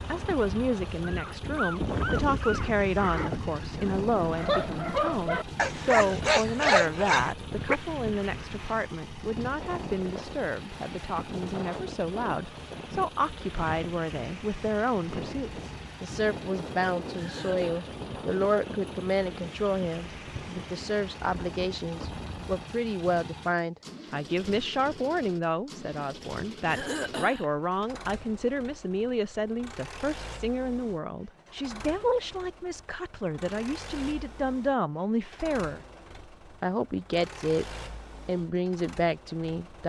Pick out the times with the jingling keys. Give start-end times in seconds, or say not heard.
not heard.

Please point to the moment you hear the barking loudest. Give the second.
7 s.